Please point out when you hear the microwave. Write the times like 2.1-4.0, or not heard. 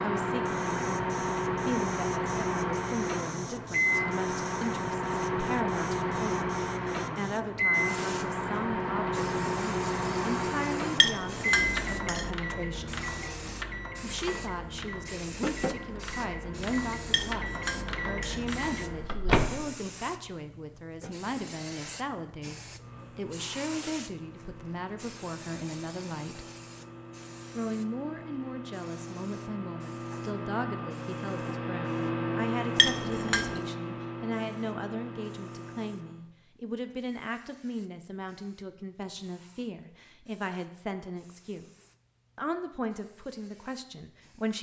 0.0-19.7, 22.6-36.3.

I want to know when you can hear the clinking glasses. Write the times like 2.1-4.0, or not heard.
10.9-12.3, 17.1-18.4, 32.8-33.6.